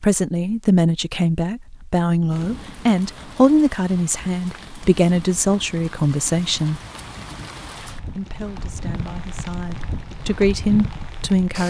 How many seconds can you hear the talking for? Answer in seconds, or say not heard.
10 s.